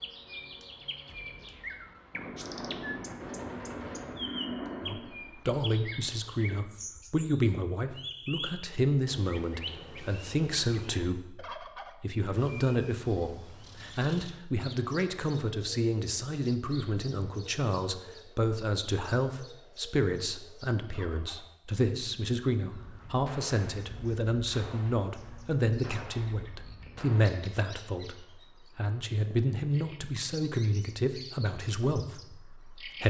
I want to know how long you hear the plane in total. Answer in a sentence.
You can hear the plane for 3 seconds altogether.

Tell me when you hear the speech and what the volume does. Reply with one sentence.
You can hear the speech from 4.8 to 33.0 s, at a steady volume.